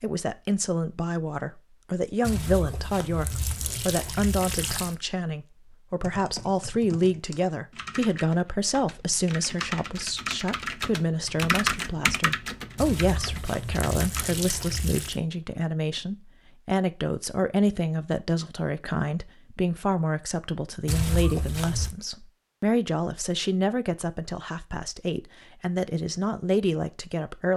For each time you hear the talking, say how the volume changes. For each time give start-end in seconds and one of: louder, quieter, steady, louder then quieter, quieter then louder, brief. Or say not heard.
0.0-27.5 steady.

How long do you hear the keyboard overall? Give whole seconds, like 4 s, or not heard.
8 s.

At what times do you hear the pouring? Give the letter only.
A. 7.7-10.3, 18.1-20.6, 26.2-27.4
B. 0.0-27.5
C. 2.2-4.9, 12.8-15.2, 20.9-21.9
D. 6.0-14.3
C.